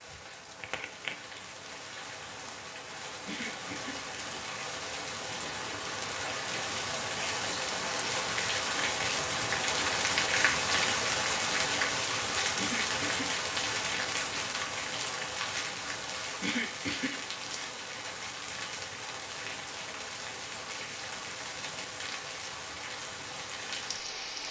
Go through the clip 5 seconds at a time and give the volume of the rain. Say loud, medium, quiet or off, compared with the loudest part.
medium, loud, loud, medium, medium.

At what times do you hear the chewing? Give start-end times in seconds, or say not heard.
not heard.